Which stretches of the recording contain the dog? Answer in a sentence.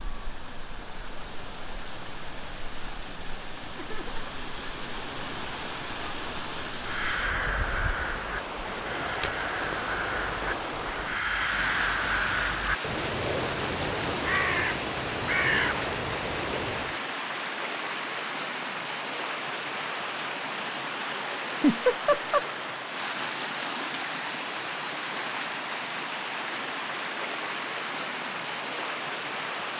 You can't hear the dog here.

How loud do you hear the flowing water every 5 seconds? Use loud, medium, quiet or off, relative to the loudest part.
medium, loud, loud, loud, loud, loud.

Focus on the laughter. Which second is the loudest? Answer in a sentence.
The volume of the laughter peaks at 22 seconds.